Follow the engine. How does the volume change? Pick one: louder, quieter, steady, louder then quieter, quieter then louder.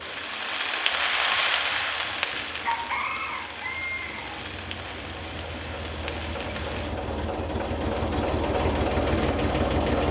louder.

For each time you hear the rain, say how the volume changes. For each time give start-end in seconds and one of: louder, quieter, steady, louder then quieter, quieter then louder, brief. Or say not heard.
0.0-6.9 quieter.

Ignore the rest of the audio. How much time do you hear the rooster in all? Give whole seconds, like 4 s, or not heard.
2 s.